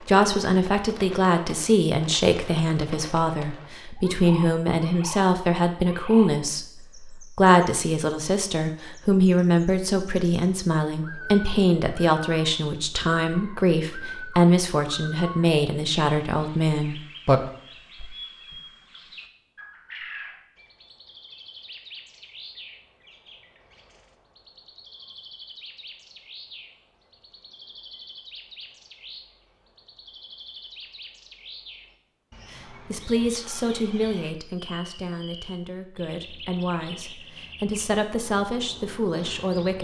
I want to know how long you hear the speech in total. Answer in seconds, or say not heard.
25 s.